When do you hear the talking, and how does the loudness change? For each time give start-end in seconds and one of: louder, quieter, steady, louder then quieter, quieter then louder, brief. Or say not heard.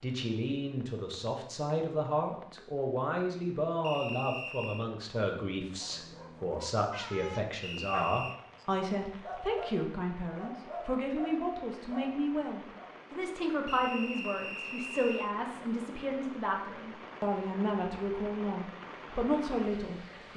0.0-20.3 steady.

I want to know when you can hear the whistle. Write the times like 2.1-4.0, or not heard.
3.8-4.9, 7.6-8.4, 13.7-15.3.